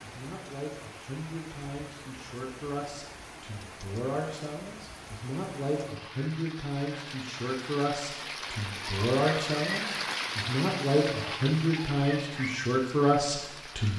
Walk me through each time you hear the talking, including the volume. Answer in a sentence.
You can hear the talking from 0.0 to 13.9 s, getting louder.